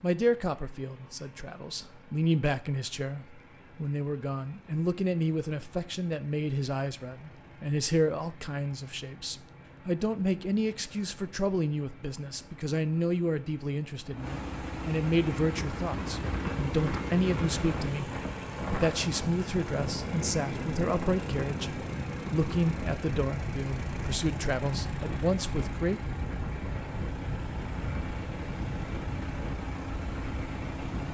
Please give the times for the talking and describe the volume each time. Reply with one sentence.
The talking can be heard from 0.0 to 26.0 s, at a steady volume.